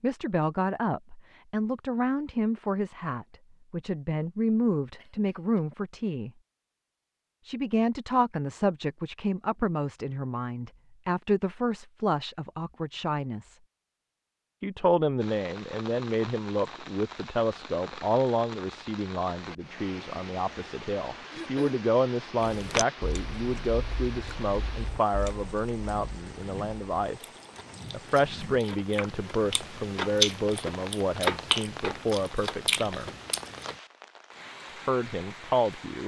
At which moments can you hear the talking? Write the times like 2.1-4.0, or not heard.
0.0-6.3, 7.5-13.6, 14.6-27.3, 27.9-33.1, 34.9-36.0.